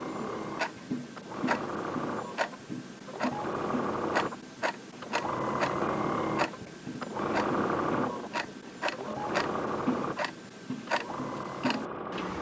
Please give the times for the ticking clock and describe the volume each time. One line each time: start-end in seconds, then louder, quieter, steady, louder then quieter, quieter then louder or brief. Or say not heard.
0.0-12.3 steady.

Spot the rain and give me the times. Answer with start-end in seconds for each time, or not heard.
not heard.